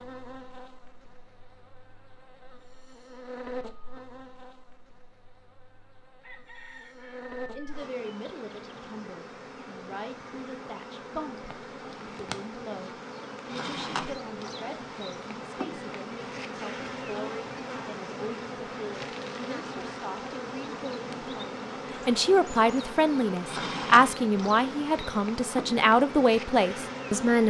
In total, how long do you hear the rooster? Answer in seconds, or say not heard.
2 s.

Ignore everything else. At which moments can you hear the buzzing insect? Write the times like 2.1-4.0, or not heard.
0.0-27.4.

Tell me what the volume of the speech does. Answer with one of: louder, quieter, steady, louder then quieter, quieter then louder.
louder.